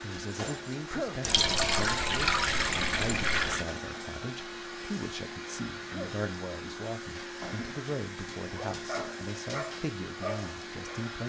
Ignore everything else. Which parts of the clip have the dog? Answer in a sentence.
The dog can be heard from 8.4 to 11.1 s.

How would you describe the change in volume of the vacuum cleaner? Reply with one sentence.
The loudness of the vacuum cleaner stays about the same.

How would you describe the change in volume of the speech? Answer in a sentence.
The loudness of the speech stays about the same.